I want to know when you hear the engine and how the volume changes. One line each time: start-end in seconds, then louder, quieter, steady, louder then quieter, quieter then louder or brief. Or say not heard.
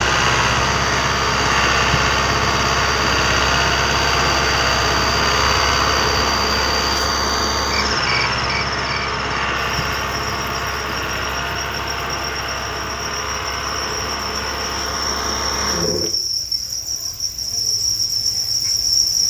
0.0-16.1 quieter.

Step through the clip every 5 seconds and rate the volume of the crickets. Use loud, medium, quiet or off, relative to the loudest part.
medium, medium, medium, loud.